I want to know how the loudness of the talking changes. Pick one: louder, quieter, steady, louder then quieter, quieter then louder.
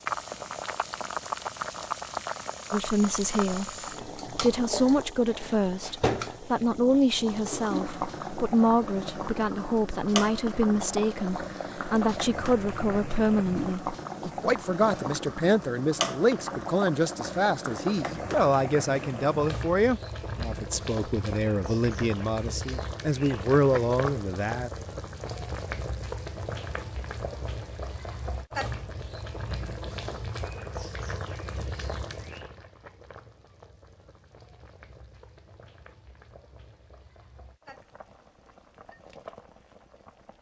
steady.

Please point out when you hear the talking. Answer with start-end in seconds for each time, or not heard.
2.7-24.7.